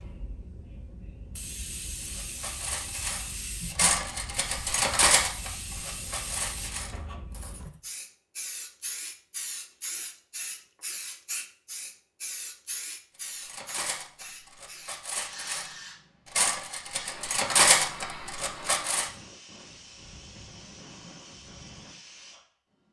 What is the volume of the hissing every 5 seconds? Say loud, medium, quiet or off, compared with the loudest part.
loud, loud, loud, loud, medium.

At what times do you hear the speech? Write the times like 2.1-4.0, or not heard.
not heard.